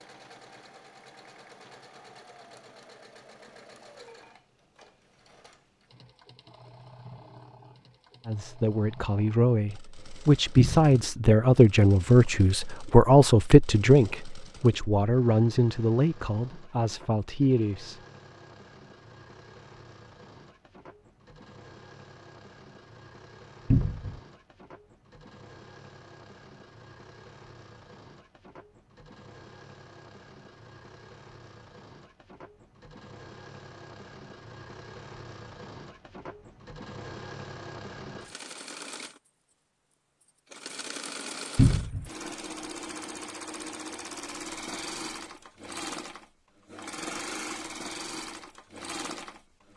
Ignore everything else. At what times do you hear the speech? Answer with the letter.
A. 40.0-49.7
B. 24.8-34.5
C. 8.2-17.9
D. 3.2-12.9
C.